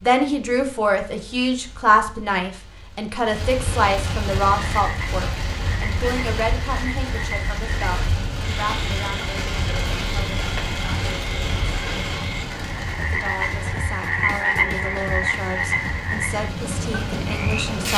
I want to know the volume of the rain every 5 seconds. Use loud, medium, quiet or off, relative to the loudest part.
medium, loud, loud, loud.